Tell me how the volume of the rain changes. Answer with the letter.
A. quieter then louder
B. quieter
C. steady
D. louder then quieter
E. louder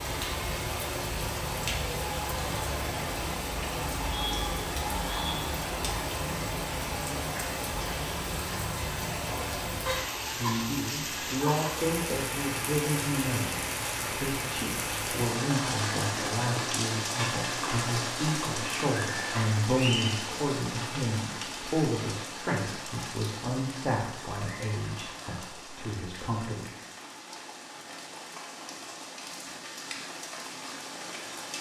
B.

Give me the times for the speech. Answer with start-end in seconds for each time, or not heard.
10.3-26.6.